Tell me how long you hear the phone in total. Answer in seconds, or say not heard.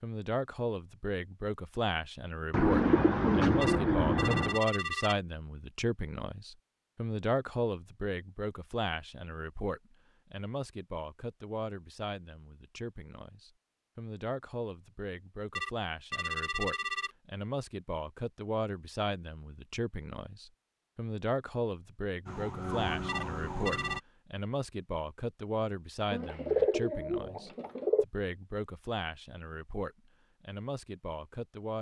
4 s.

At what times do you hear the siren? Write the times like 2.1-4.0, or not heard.
22.2-24.0.